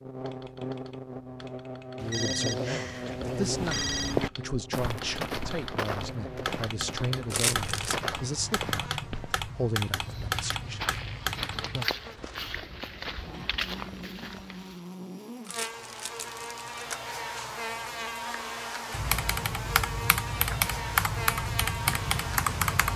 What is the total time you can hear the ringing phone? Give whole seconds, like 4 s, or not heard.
2 s.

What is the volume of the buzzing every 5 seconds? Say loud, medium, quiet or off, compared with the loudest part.
loud, medium, medium, loud, loud.